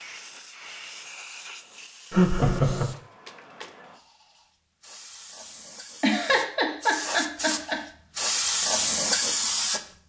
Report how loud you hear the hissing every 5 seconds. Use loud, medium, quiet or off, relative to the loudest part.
quiet, loud.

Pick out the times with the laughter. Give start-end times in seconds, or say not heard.
2.1-2.9, 6.0-7.8.